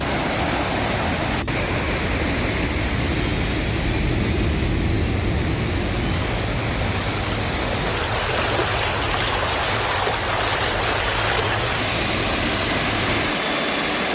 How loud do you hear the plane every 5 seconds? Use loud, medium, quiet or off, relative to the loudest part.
loud, loud, medium.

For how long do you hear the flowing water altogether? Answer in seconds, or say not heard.
14 s.